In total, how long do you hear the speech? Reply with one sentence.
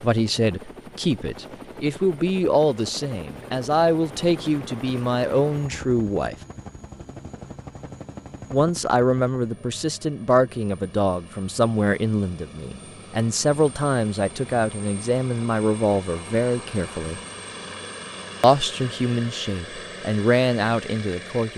You can hear the speech for 18 seconds altogether.